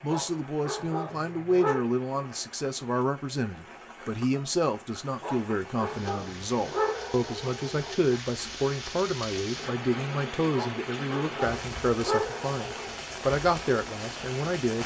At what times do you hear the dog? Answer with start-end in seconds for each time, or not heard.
0.1-1.9, 5.2-8.0, 10.5-12.9.